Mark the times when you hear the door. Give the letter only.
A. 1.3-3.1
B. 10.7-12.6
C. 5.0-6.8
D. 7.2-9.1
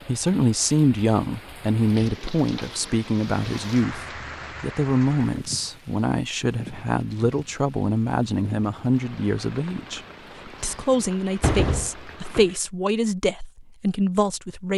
B.